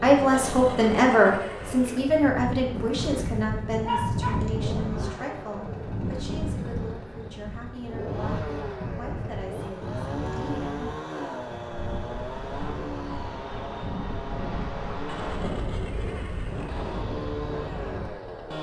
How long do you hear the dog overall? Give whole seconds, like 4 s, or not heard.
2 s.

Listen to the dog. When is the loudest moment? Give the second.
4 s.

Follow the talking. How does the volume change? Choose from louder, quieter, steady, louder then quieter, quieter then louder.
quieter.